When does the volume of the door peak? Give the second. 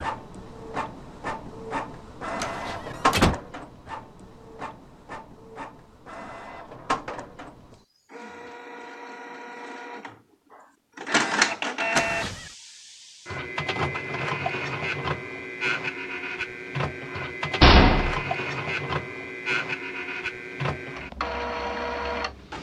18 s.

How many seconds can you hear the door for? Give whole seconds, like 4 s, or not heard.
2 s.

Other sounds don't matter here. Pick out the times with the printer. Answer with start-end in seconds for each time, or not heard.
0.0-22.5.